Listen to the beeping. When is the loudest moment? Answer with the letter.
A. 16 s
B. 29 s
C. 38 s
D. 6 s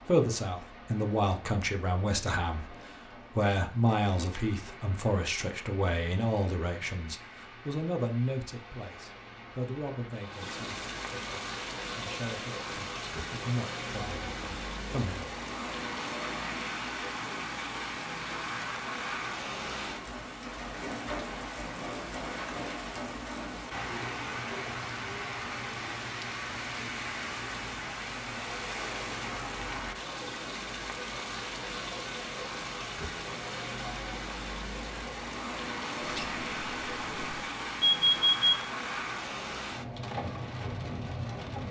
C.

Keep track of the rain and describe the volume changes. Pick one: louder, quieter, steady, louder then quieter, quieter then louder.
louder.